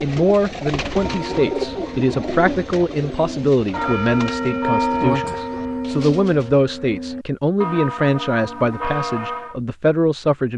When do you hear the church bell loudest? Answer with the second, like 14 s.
5 s.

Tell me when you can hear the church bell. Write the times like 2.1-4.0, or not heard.
0.9-9.6.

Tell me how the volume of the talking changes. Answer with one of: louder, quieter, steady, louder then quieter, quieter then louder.
steady.